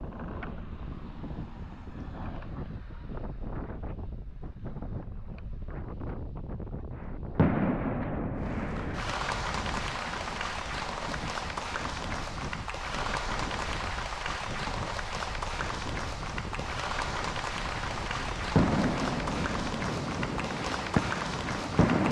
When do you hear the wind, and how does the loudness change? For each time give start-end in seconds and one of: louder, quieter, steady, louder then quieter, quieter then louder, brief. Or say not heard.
0.0-21.9 steady.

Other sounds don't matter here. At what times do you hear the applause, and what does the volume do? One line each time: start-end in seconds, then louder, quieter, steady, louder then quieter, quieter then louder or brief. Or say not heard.
8.3-22.0 steady.